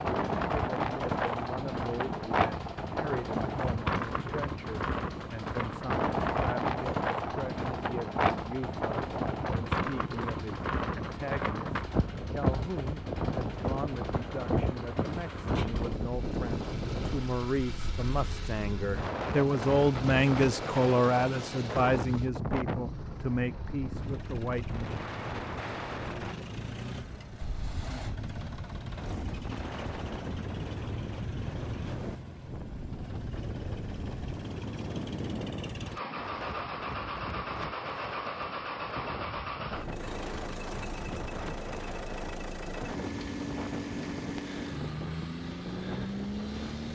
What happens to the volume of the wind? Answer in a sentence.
The loudness of the wind goes down.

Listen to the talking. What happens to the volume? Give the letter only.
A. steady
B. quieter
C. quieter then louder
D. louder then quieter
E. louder
E.